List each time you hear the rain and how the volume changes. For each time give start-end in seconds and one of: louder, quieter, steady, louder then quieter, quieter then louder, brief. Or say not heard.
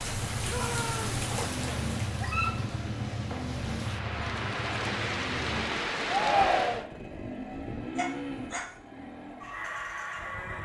0.0-6.8 quieter then louder.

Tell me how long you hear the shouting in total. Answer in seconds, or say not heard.
2 s.